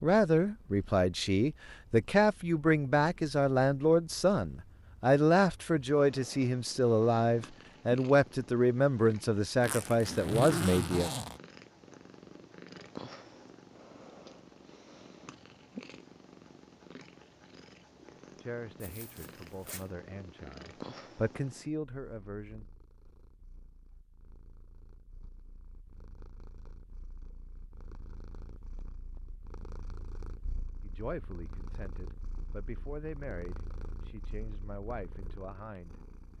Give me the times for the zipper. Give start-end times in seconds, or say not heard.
9.6-11.4, 18.8-19.9.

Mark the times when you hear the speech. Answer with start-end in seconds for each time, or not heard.
0.0-11.1, 18.4-22.6, 30.8-36.3.